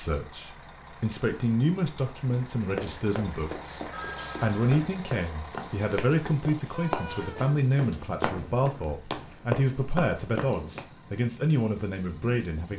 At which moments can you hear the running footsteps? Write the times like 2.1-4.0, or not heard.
2.8-10.8.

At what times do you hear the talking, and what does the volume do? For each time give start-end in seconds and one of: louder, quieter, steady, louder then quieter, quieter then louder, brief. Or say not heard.
0.0-12.7 steady.